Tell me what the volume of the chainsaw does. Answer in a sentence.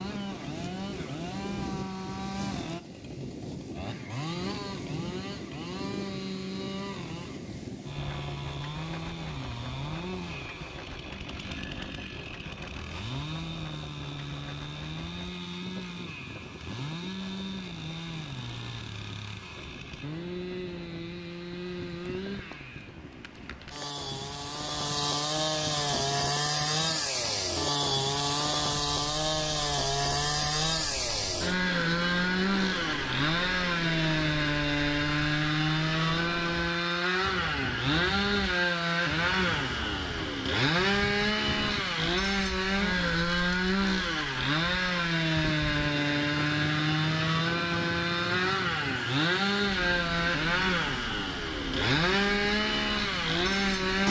The volume of the chainsaw goes up.